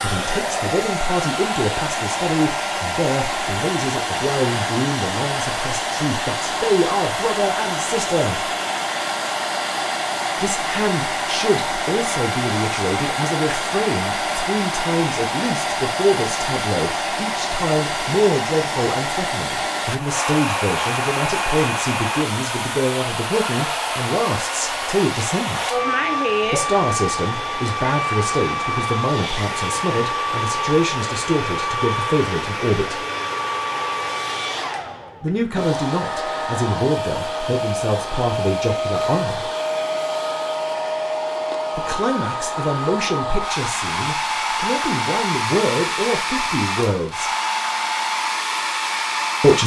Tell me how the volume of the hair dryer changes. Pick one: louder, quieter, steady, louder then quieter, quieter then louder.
steady.